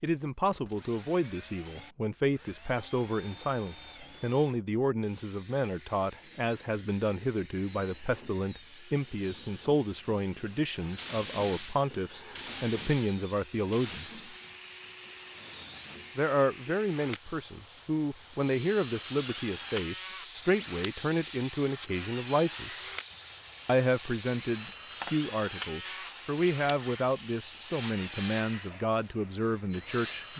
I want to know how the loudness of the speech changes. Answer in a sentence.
The volume of the speech stays about the same.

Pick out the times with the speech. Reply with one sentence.
You can hear the speech from 0.0 to 14.2 s, from 16.1 to 22.9 s and from 23.6 to 30.3 s.